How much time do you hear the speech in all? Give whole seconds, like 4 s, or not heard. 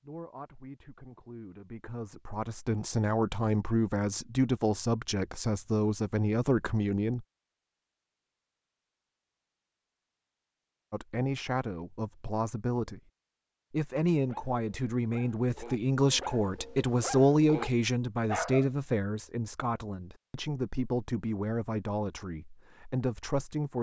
19 s.